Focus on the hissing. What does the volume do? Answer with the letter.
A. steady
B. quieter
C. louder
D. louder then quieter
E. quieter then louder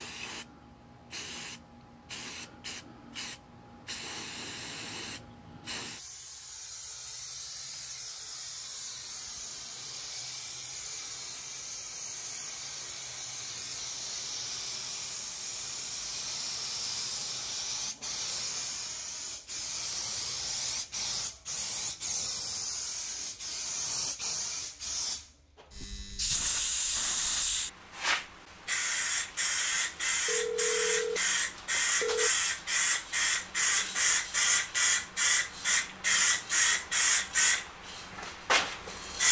C.